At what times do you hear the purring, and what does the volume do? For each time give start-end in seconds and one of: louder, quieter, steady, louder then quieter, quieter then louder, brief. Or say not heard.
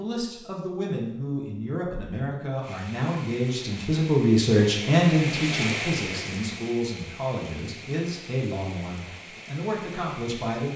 not heard.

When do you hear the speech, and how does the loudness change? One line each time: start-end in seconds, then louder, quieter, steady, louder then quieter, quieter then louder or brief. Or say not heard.
0.0-10.7 louder then quieter.